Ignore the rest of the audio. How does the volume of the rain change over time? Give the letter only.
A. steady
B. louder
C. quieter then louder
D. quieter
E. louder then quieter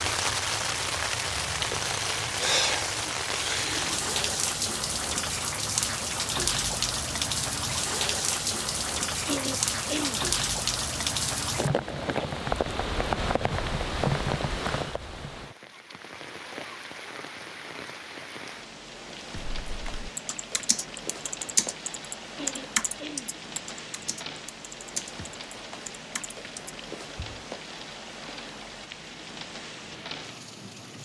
D.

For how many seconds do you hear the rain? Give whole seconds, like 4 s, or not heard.
31 s.